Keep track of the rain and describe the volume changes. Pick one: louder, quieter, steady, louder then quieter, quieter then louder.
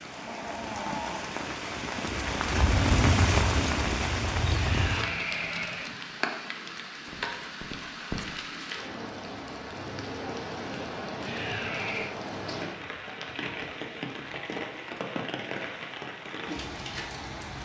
quieter.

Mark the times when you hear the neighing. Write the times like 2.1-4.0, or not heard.
4.5-6.0, 11.2-12.2.